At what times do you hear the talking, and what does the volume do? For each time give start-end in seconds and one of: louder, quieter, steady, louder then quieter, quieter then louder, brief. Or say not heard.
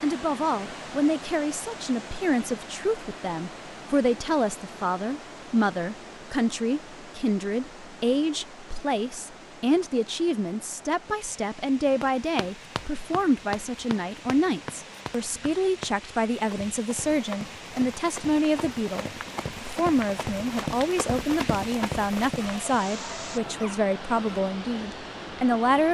0.0-25.8 steady.